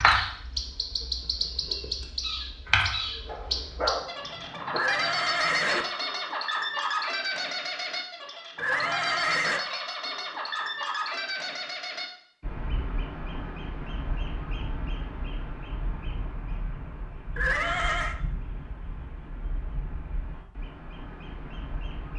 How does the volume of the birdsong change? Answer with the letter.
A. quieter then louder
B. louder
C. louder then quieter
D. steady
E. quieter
E.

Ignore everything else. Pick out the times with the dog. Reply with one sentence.
You can hear the dog from 3.2 to 4.8 s.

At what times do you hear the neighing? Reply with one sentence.
You can hear the neighing from 4.8 to 5.8 s, from 8.6 to 9.6 s and from 17.4 to 18.1 s.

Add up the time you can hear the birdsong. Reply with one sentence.
The birdsong can be heard for 22 seconds in total.